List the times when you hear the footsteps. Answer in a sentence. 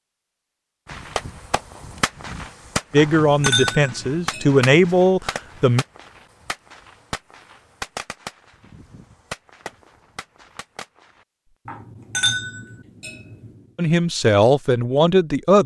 You can't hear the footsteps here.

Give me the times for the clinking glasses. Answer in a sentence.
The clinking glasses can be heard from 3.0 to 5.0 s and from 11.7 to 13.5 s.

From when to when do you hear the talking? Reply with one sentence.
The talking can be heard from 2.9 to 5.8 s and from 13.8 to 15.6 s.